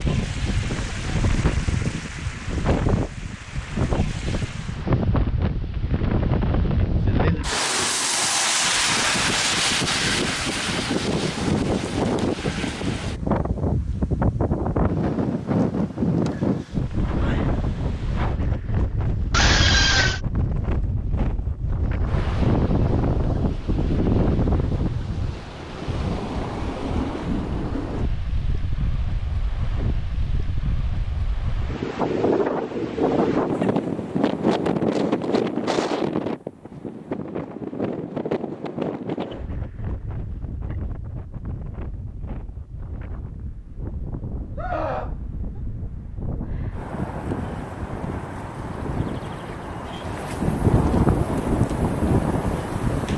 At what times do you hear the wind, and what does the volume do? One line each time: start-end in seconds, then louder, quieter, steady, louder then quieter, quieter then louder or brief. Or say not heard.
0.0-53.1 steady.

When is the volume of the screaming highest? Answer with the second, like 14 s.
20 s.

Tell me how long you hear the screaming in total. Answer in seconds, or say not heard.
2 s.